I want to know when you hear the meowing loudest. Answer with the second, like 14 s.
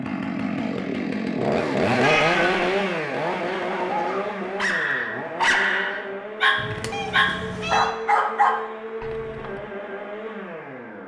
2 s.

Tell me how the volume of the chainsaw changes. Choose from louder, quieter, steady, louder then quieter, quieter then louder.
quieter.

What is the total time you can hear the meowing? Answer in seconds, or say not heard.
2 s.